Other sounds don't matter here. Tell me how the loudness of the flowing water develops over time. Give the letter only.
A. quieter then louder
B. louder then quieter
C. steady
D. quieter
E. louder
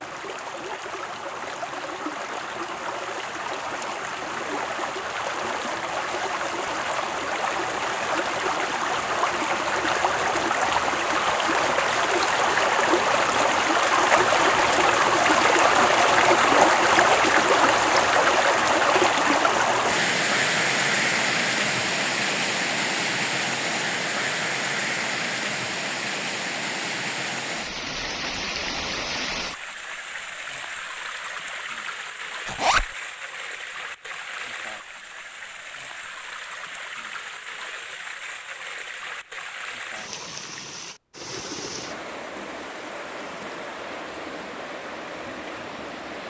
B.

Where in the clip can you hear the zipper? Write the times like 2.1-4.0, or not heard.
32.5-32.9.